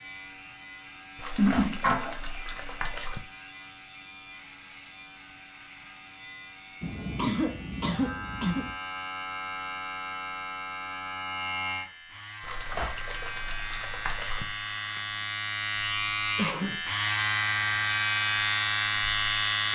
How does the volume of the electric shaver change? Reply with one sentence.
The loudness of the electric shaver goes up.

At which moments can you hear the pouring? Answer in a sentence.
You can hear the pouring from 1.1 to 3.2 s and from 12.4 to 14.4 s.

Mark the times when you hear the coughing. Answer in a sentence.
The coughing can be heard from 1.4 to 2.1 s, from 6.8 to 8.7 s and from 15.8 to 16.8 s.